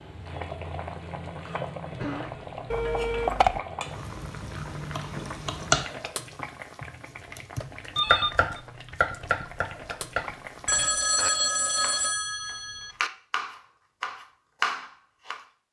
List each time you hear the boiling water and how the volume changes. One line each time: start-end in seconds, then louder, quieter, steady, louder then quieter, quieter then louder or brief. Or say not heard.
0.0-10.9 quieter.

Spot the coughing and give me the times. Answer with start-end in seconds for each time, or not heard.
1.9-3.0.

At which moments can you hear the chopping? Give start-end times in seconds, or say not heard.
4.9-15.4.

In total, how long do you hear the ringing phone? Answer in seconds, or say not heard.
4 s.